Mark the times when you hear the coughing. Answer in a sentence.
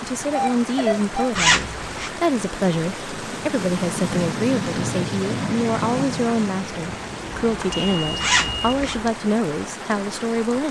The coughing can't be heard in this clip.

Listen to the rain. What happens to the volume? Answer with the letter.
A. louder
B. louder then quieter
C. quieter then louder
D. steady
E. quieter
B.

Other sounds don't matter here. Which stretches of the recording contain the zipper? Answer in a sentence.
The zipper can be heard from 1.4 to 2.1 s and from 8.2 to 8.9 s.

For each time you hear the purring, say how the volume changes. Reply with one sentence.
The purring can't be heard in this clip.